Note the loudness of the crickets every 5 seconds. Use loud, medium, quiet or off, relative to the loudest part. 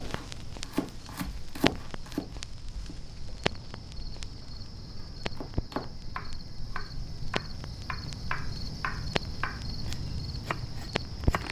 medium, loud, loud.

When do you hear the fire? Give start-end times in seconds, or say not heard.
0.0-11.4.